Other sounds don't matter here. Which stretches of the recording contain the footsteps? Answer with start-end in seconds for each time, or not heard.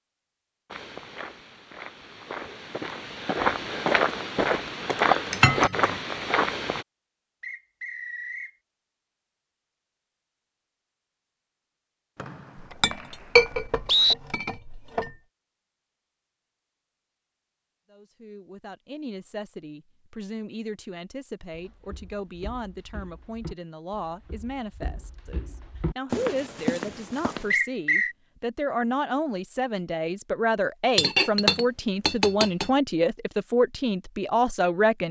0.7-6.8, 21.5-27.6.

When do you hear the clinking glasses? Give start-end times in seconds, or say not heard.
5.3-6.0, 12.6-15.2, 30.9-32.7.